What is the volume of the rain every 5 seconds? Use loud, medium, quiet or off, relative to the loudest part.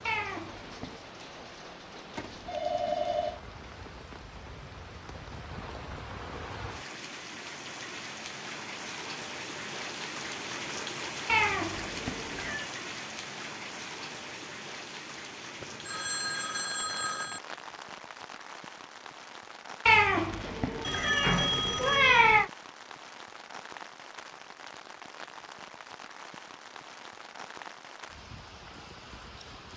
medium, loud, loud, medium, medium, medium.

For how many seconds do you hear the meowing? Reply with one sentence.
You can hear the meowing for 5 seconds altogether.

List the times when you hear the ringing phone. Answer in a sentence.
The ringing phone can be heard from 2.1 to 3.4 s, from 15.6 to 17.4 s and from 20.8 to 22.4 s.